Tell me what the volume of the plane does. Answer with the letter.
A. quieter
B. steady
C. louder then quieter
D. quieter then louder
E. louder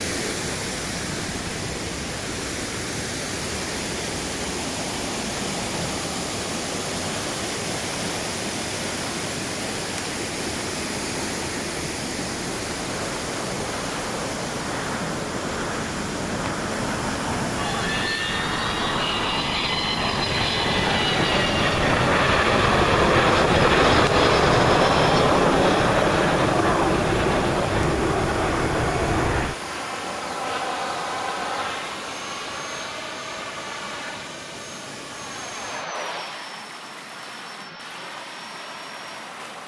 C.